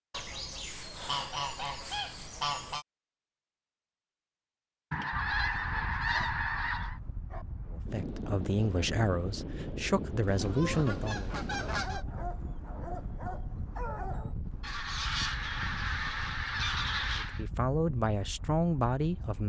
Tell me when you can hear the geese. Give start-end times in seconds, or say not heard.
0.1-2.9, 4.9-7.0, 10.2-12.1, 14.6-17.4.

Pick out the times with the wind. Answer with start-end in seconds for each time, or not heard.
5.1-19.4.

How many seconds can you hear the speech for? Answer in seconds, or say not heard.
6 s.